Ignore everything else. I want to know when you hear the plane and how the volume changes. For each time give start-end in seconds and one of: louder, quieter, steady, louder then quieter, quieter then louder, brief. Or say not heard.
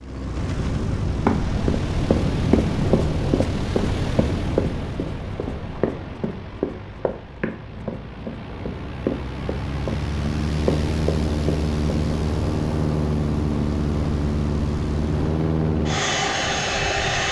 0.0-17.2 quieter then louder.